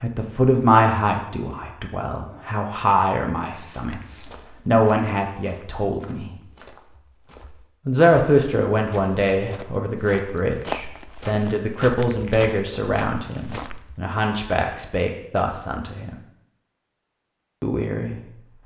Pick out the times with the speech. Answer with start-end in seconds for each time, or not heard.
0.0-6.3, 7.8-16.1, 17.6-18.2.